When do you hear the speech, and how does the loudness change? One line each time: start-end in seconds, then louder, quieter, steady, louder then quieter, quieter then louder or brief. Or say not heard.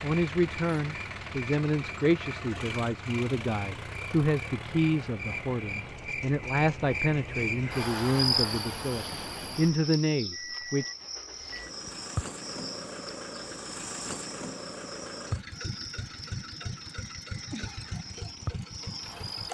0.0-10.9 steady.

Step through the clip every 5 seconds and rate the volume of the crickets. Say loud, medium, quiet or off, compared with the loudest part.
medium, loud, medium, medium.